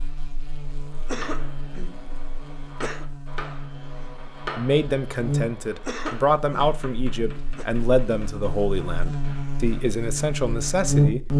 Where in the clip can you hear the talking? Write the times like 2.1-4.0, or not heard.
4.5-11.3.